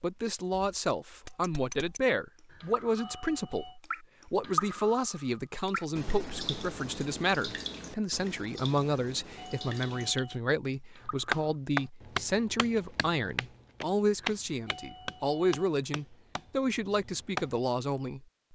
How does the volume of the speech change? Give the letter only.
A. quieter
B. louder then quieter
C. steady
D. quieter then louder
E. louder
C.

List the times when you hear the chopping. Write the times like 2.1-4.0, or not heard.
11.3-17.6.